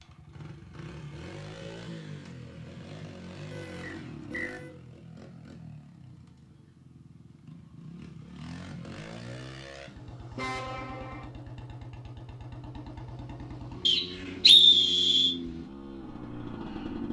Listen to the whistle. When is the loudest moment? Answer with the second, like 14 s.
15 s.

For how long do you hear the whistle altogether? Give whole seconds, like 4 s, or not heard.
2 s.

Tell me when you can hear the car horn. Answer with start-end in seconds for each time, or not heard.
3.5-4.8, 10.3-11.2.